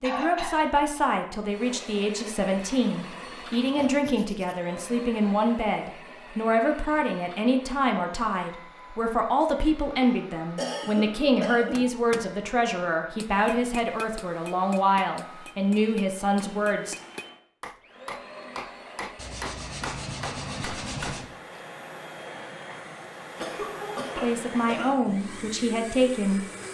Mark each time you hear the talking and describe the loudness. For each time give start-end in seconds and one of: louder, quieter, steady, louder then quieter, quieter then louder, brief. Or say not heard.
0.0-16.9 steady
24.1-26.4 brief.